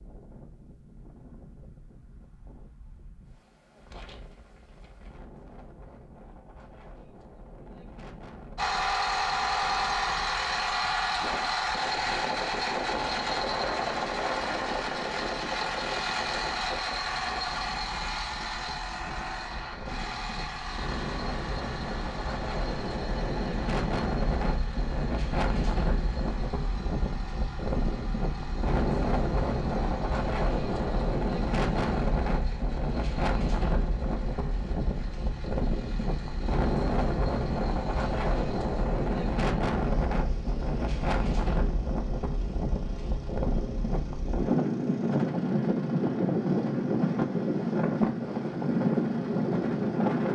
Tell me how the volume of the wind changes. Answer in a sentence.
The loudness of the wind goes up.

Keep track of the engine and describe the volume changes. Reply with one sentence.
The loudness of the engine goes down.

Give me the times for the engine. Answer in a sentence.
You can hear the engine from 8.6 to 50.3 s.